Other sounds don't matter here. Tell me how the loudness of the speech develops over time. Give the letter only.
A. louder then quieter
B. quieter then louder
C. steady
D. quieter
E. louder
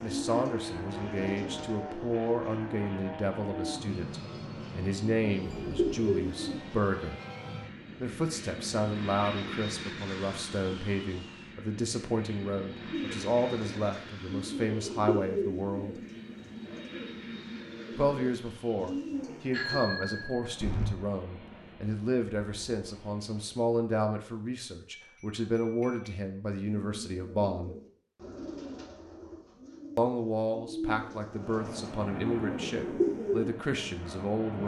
C.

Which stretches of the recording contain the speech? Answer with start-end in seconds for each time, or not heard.
0.0-7.2, 8.0-16.0, 17.9-27.8, 29.9-34.6.